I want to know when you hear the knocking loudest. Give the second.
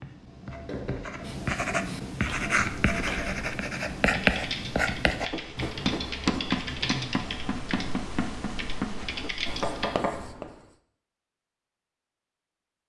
10 s.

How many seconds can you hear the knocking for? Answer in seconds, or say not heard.
4 s.